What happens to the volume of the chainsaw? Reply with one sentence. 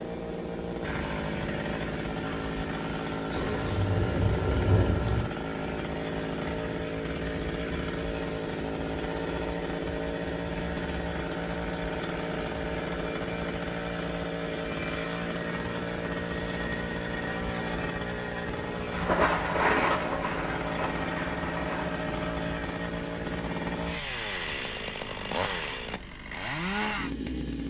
The volume of the chainsaw stays about the same.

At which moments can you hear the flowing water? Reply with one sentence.
You can't hear the flowing water here.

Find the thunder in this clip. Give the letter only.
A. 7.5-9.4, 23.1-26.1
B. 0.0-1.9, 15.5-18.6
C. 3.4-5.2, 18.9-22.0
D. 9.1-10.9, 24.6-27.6
C.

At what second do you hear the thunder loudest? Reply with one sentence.
The loudest moment of the thunder is at 20 seconds.